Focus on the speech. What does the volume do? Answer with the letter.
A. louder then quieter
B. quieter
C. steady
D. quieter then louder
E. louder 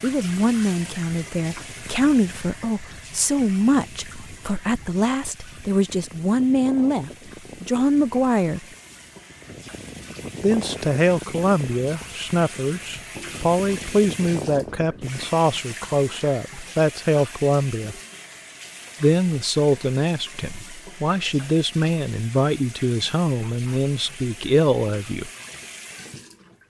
C.